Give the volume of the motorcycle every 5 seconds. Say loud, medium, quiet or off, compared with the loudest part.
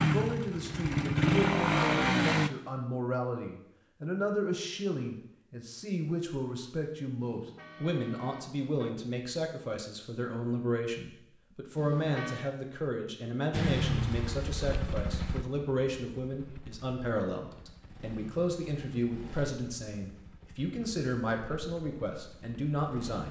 loud, off, medium, quiet, quiet.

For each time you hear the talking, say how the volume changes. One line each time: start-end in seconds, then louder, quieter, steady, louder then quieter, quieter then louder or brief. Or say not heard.
0.0-23.2 steady.